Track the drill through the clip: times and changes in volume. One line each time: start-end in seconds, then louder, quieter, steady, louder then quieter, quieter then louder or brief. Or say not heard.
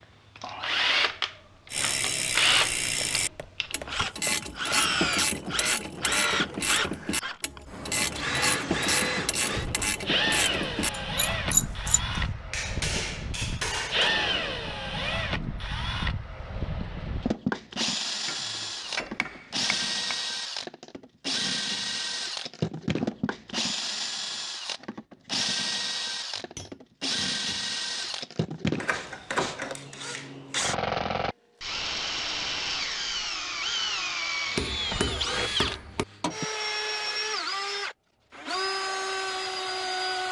0.0-40.2 steady.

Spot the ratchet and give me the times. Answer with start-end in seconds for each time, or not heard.
1.7-12.0.